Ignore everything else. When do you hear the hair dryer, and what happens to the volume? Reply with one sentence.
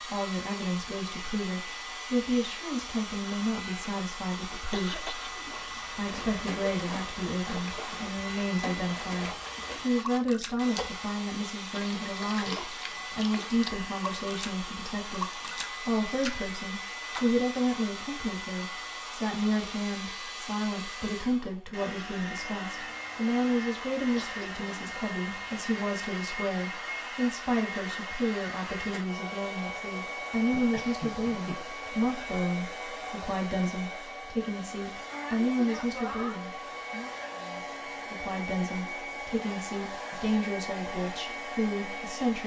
The hair dryer can be heard from 0.0 to 42.4 s, at a steady volume.